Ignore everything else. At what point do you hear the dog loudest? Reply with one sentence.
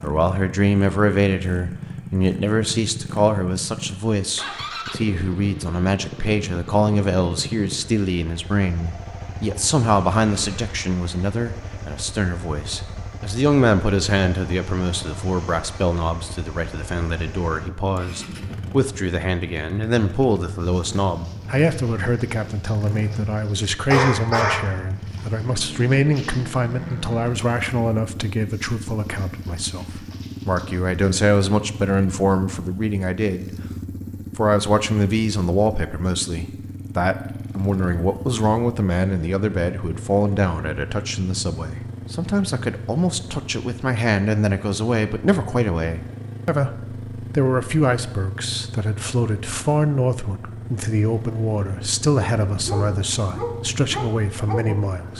The volume of the dog peaks at 24 seconds.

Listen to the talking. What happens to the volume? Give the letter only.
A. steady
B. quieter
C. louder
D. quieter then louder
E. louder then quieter
A.